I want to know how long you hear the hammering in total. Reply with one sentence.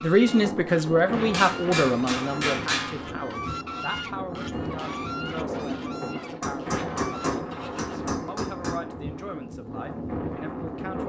You can hear the hammering for 4 seconds altogether.